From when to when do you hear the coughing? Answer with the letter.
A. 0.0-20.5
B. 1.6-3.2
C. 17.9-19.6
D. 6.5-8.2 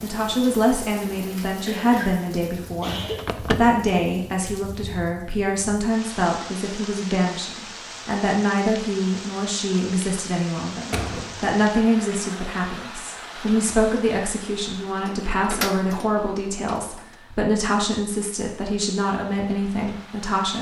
B.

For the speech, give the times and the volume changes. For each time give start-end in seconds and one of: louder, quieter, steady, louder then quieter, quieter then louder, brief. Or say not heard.
0.0-20.5 steady.